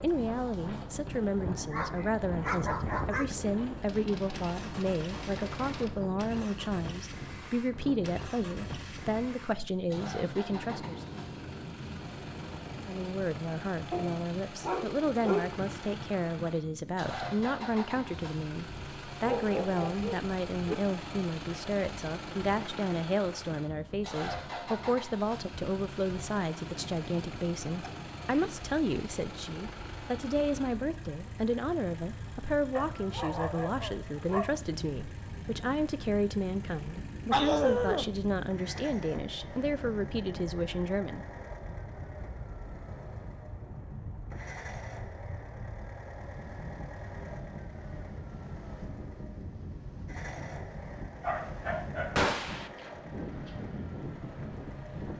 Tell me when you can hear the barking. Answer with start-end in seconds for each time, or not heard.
1.4-3.4, 13.9-15.5, 19.2-20.8, 32.8-34.5, 37.3-38.1, 51.2-52.3.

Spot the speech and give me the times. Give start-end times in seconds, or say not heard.
0.0-11.0, 12.7-41.2.